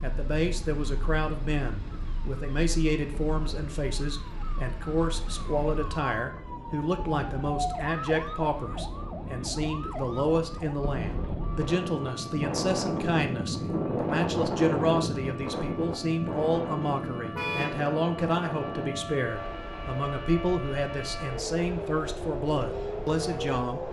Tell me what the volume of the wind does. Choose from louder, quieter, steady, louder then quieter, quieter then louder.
louder then quieter.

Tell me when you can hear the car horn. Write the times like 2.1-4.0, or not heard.
17.4-17.8.